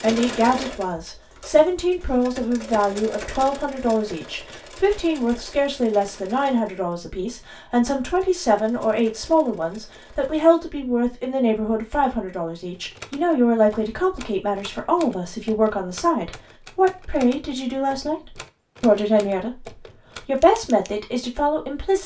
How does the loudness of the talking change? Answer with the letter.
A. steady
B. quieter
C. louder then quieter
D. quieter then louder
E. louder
A.